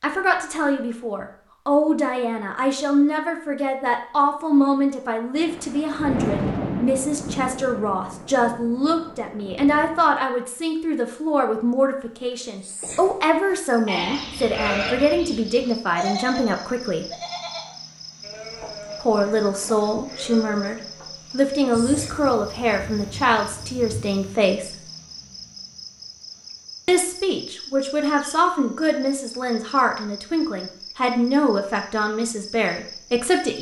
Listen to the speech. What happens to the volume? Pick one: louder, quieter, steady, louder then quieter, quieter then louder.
steady.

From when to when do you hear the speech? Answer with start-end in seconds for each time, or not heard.
0.0-17.1, 19.0-24.8, 26.9-33.5.